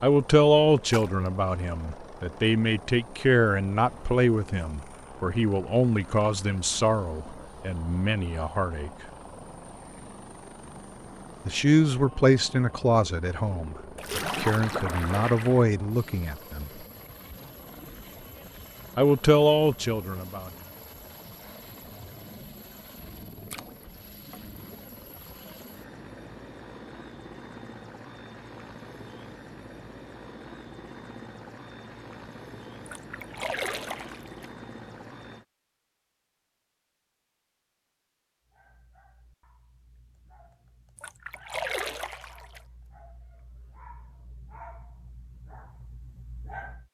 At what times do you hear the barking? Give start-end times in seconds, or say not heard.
38.4-46.8.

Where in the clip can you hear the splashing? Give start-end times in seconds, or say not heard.
0.9-1.3, 13.9-15.7, 23.5-24.6, 32.9-34.5, 41.0-42.6.